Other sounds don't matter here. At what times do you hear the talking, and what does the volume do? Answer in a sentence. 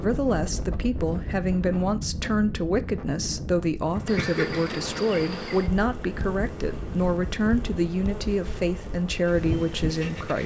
The talking can be heard from 0.0 to 10.4 s, at a steady volume.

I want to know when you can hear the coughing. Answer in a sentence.
The coughing can be heard from 4.0 to 4.8 s.